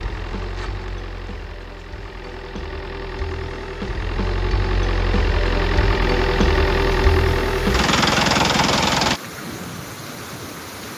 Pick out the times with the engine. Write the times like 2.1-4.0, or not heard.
0.0-9.2.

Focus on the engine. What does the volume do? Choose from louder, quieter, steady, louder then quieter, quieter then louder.
louder.